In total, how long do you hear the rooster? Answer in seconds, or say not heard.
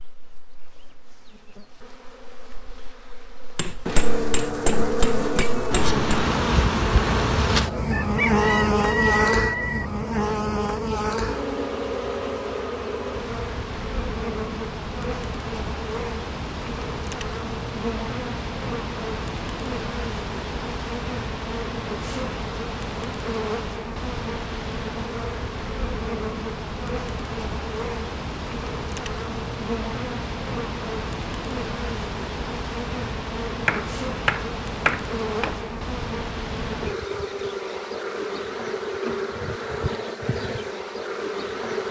2 s.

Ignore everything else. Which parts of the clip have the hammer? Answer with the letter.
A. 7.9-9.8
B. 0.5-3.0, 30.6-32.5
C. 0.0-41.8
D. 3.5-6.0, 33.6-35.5
D.